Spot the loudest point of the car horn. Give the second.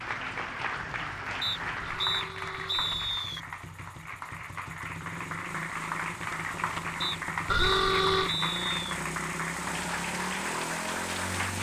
8 s.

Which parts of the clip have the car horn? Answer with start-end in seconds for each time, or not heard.
1.8-3.2, 7.5-8.3.